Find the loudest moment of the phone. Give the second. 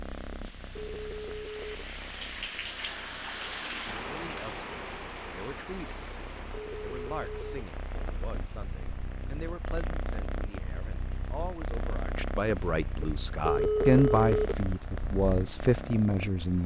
14 s.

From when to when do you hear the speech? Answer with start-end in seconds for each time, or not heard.
4.1-16.6.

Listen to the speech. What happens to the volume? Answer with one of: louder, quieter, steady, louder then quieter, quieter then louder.
louder.